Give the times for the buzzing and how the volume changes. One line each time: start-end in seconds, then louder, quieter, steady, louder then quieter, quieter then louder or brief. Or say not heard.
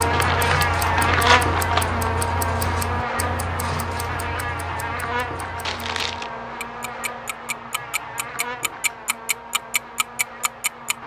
0.0-11.0 quieter.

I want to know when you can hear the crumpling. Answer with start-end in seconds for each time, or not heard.
0.1-2.0, 5.7-6.3.